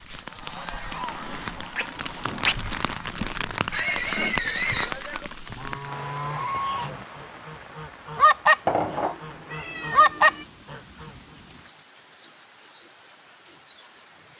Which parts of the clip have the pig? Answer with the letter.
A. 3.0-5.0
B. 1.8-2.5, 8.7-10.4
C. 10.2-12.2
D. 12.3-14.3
A.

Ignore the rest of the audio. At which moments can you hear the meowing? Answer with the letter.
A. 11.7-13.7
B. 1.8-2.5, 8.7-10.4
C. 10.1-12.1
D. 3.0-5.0
B.